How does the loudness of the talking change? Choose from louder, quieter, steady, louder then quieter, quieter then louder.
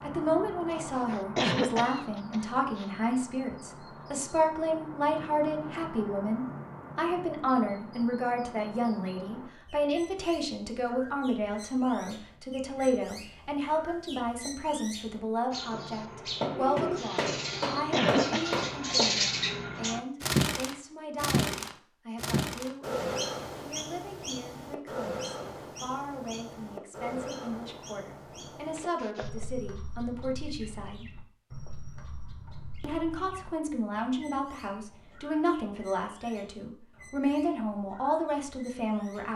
quieter then louder.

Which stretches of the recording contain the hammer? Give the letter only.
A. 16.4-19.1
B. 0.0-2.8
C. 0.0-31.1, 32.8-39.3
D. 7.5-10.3
A.